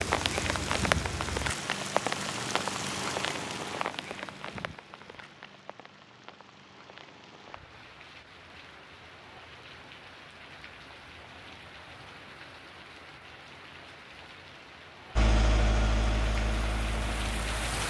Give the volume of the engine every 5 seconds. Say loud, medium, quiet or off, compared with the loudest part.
medium, off, off, loud.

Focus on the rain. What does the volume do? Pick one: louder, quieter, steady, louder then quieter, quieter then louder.
quieter then louder.